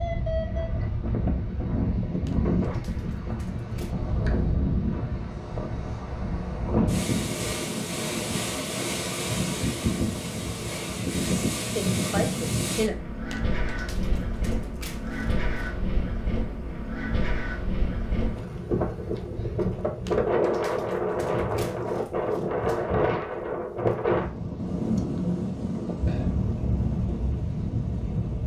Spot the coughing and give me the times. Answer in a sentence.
You can't hear the coughing here.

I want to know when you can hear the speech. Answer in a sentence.
You can hear the speech from 11.8 to 12.9 s.